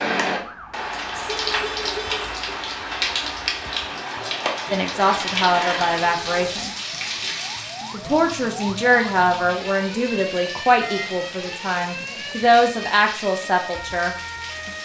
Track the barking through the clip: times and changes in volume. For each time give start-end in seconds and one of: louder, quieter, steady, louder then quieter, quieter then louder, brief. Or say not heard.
not heard.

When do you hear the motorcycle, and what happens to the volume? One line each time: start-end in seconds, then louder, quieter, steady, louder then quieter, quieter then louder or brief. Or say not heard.
not heard.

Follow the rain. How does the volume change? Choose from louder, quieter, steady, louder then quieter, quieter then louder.
quieter.